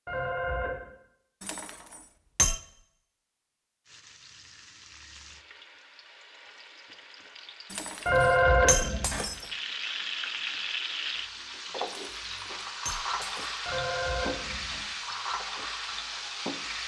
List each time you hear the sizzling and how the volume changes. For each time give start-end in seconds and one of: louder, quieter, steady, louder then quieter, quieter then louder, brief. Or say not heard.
3.9-16.8 louder.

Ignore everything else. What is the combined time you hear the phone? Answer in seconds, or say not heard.
3 s.